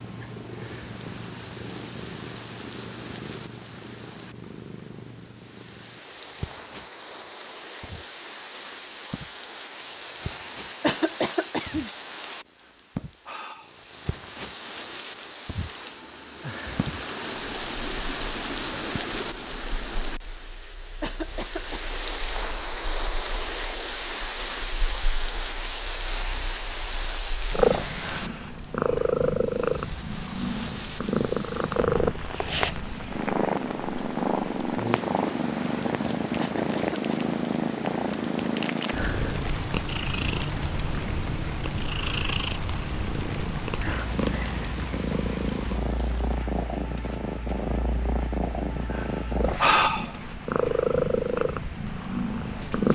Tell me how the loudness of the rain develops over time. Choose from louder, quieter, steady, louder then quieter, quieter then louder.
louder then quieter.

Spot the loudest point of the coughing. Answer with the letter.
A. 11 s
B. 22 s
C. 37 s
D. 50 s
A.